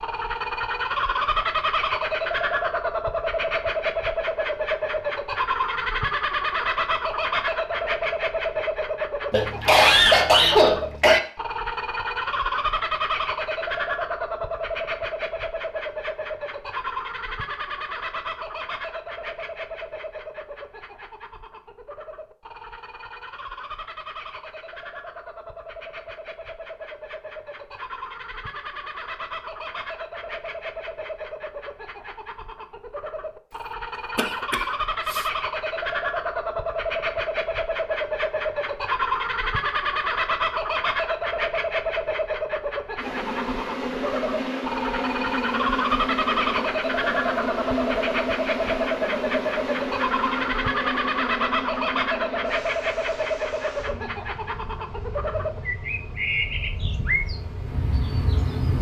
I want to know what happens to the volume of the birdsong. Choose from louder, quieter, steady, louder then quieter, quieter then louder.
quieter then louder.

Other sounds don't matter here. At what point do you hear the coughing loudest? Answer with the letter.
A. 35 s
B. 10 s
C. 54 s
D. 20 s
B.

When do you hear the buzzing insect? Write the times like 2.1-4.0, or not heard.
43.0-58.7.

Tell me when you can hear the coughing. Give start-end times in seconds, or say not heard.
9.3-11.2, 34.1-35.2.